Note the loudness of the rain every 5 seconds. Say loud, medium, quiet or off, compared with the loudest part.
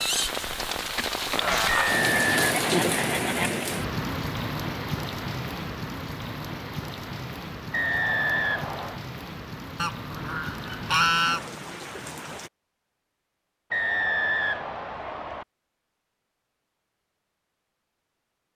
loud, medium, medium, off.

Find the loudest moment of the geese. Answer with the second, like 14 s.
11 s.